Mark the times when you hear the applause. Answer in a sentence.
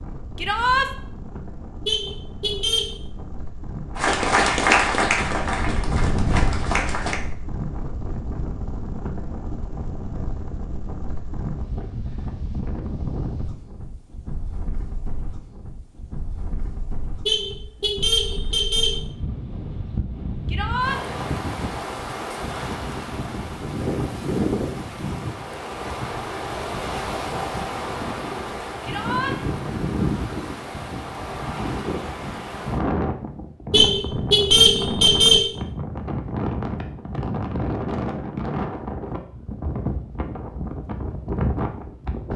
The applause can be heard from 4.0 to 7.2 s.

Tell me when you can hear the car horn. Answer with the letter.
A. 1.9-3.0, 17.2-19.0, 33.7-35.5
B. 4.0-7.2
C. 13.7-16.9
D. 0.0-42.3
A.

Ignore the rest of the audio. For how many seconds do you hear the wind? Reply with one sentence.
You can hear the wind for 42 seconds altogether.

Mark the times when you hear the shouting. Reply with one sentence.
The shouting can be heard from 0.3 to 0.9 s, from 20.4 to 21.0 s and from 28.8 to 29.4 s.